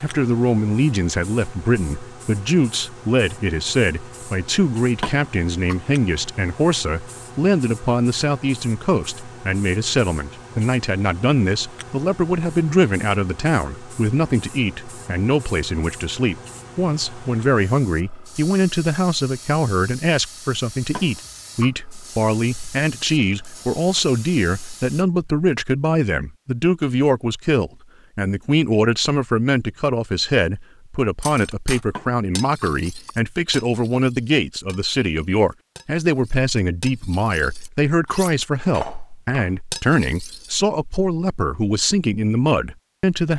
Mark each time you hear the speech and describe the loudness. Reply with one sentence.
The speech can be heard from 0.0 to 43.3 s, at a steady volume.